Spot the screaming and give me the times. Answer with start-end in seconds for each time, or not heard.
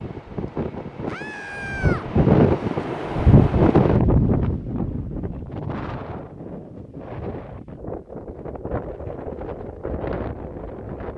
1.1-2.0.